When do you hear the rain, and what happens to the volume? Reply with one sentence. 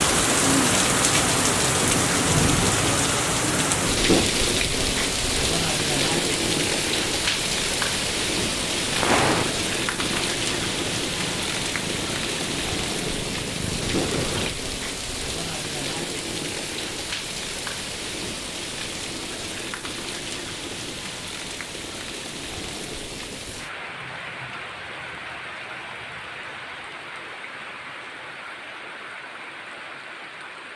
The rain can be heard from 0.0 to 30.7 s, getting quieter.